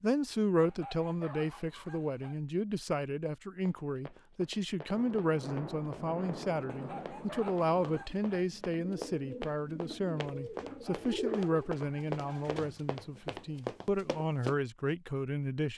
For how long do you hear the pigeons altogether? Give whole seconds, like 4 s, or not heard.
5 s.